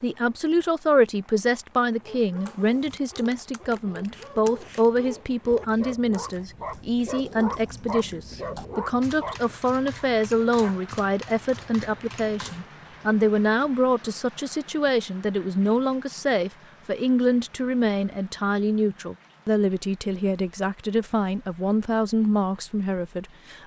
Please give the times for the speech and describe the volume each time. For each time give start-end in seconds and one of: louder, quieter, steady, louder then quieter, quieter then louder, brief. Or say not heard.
0.0-23.6 steady.